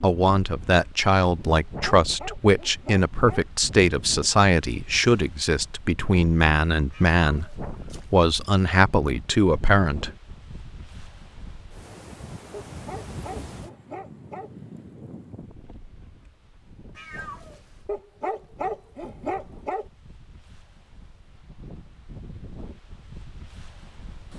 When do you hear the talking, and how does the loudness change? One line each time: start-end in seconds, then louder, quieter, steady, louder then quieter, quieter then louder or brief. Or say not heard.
0.0-10.1 steady.